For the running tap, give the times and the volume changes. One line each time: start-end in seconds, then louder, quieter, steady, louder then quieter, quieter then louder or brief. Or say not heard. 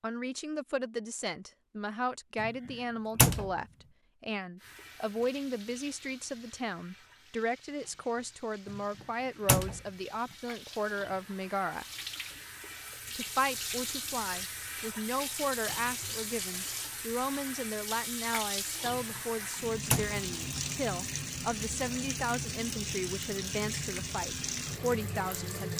4.5-25.7 louder.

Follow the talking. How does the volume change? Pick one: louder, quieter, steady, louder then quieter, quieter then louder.
steady.